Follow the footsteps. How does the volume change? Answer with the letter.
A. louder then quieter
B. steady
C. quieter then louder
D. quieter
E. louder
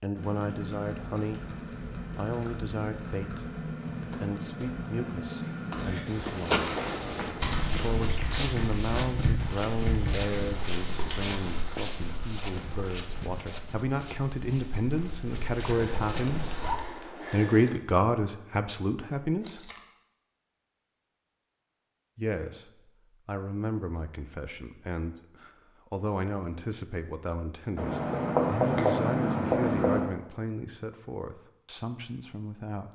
D.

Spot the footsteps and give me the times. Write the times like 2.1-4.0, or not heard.
6.2-16.8.